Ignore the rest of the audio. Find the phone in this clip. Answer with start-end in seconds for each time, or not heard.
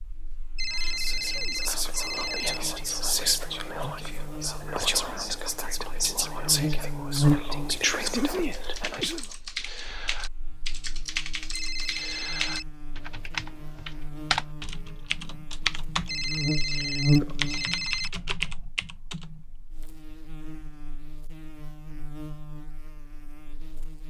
0.6-2.6, 11.5-12.7, 16.1-18.1.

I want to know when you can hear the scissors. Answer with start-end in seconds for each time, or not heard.
not heard.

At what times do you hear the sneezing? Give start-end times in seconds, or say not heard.
0.7-2.5, 8.1-9.2, 16.6-17.7.